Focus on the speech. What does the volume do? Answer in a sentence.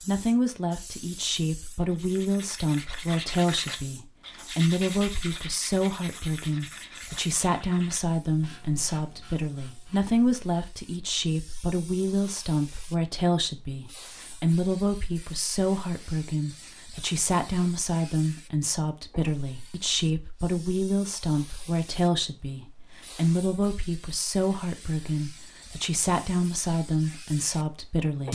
The loudness of the speech stays about the same.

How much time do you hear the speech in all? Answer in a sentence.
The speech can be heard for 28 seconds in total.